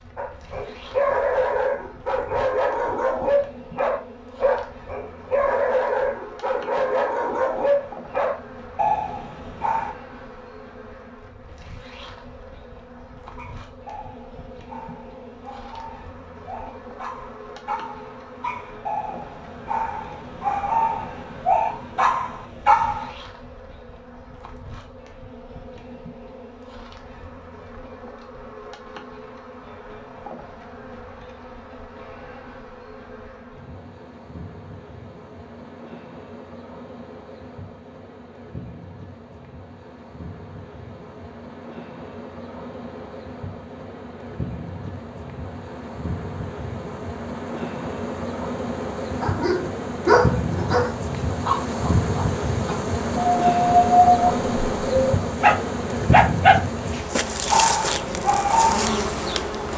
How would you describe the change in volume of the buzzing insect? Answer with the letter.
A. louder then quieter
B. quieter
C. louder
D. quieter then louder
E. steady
C.